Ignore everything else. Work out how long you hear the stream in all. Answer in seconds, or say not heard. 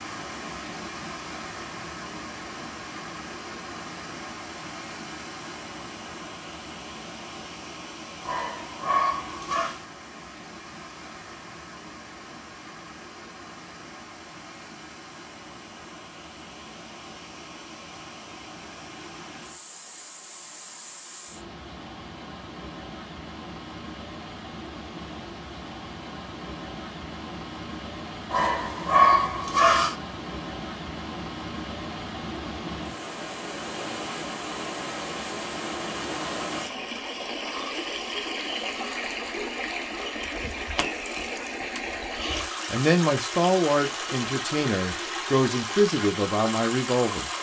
47 s.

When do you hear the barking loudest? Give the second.
29 s.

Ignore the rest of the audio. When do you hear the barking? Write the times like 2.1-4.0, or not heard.
8.2-9.8, 28.3-29.9.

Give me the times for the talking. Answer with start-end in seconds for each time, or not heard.
42.7-47.3.